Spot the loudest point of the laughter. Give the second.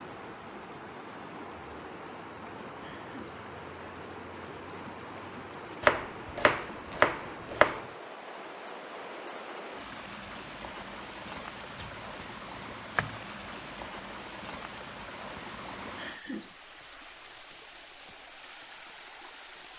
16 s.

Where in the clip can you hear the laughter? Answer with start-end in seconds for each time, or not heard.
2.8-3.4, 15.9-16.6.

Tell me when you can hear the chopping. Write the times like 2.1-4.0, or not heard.
5.8-7.8, 11.8-13.2.